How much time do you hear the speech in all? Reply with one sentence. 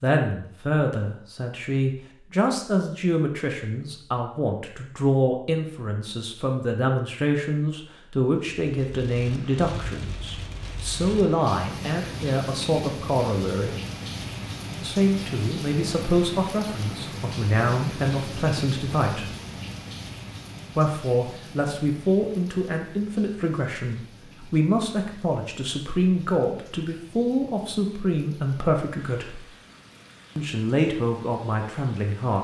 The speech can be heard for 29 seconds in total.